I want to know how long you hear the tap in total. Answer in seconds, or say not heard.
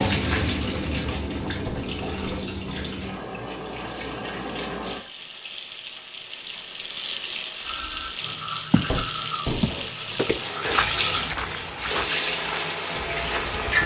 14 s.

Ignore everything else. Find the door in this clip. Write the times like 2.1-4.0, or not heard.
1.6-2.5, 8.8-9.7.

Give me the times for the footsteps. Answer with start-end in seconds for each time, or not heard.
8.7-13.8.